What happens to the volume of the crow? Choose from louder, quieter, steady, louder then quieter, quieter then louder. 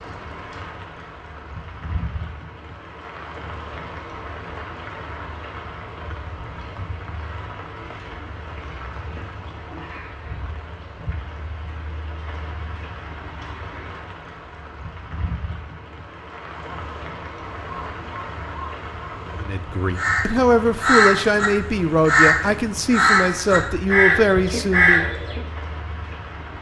louder.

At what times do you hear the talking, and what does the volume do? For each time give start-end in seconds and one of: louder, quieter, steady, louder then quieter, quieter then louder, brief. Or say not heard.
19.4-25.1 steady.